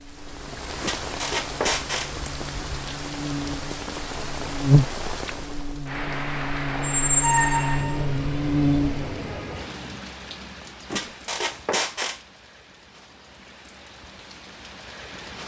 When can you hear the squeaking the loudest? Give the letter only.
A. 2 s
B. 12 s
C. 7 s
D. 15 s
C.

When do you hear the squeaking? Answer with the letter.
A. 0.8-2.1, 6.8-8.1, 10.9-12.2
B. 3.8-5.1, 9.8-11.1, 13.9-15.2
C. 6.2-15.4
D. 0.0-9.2
A.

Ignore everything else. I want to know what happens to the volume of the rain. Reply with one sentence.
The loudness of the rain goes down.